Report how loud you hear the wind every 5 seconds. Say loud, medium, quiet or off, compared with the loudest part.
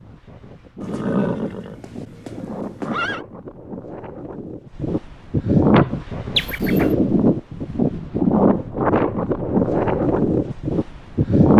quiet, loud, loud.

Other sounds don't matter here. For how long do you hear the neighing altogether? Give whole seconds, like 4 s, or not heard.
3 s.